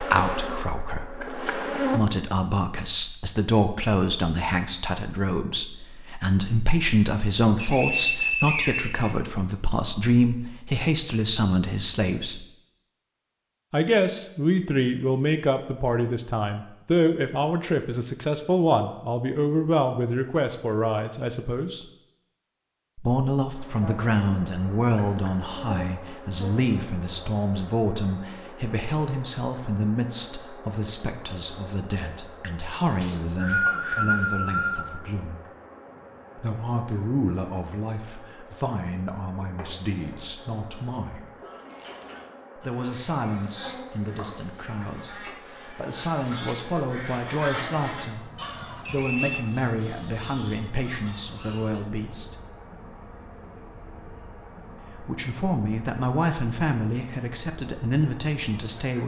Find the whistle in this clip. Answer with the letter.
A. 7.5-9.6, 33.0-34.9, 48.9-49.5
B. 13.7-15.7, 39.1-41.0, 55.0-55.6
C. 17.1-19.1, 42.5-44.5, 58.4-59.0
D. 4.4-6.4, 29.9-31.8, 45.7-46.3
A.